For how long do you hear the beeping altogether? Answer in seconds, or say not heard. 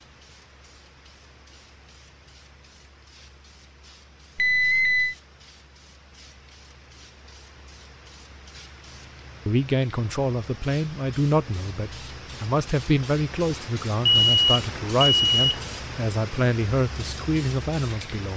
2 s.